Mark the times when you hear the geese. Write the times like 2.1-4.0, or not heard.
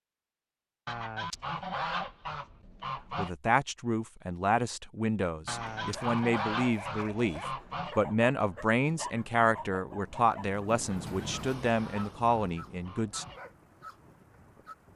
0.8-3.3, 5.5-8.0, 10.9-13.4.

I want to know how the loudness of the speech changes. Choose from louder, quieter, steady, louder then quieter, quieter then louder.
steady.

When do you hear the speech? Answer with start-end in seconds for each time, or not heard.
3.1-13.2.